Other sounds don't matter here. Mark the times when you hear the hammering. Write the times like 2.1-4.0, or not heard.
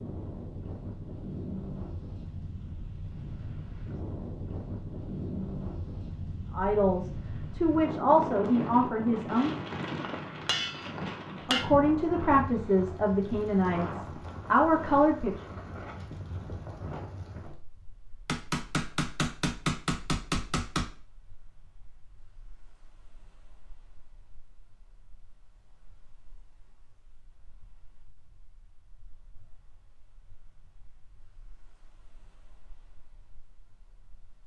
10.0-11.7, 18.2-20.9.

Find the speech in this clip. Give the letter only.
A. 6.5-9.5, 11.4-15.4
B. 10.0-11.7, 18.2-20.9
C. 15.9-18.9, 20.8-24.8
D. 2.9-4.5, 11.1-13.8
A.